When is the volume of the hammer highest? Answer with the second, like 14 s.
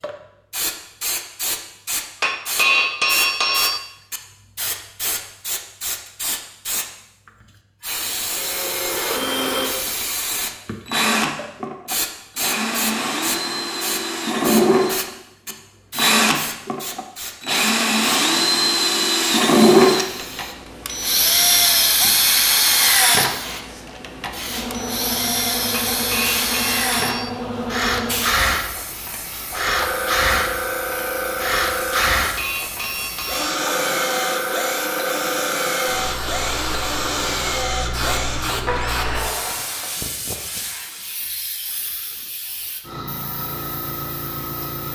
3 s.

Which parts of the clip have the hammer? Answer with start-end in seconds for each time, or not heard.
2.2-3.8, 25.9-27.3, 32.2-33.6.